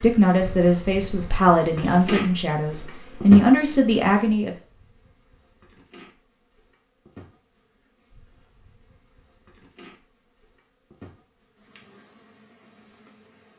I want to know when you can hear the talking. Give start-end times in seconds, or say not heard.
0.0-4.5.